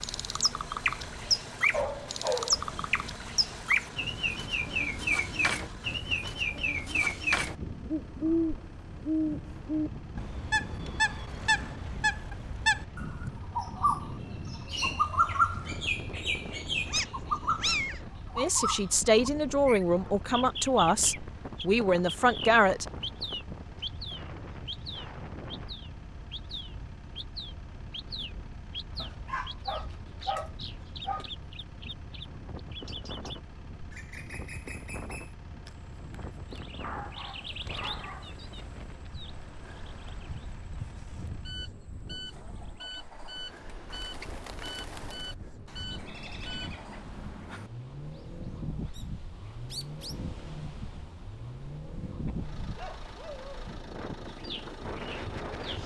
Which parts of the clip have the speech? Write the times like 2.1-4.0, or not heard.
18.4-22.9.